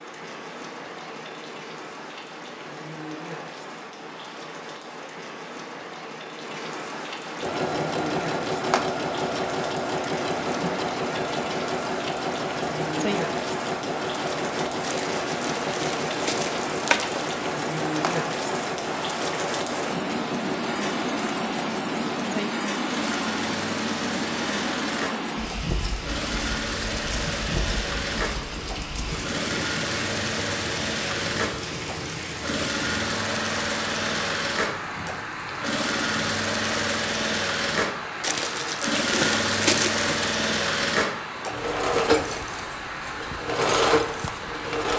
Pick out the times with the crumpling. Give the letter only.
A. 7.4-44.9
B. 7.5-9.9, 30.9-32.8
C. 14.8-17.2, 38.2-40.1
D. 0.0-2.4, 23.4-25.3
C.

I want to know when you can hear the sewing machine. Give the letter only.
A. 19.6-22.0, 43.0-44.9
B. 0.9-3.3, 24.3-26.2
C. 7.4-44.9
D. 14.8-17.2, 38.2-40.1
C.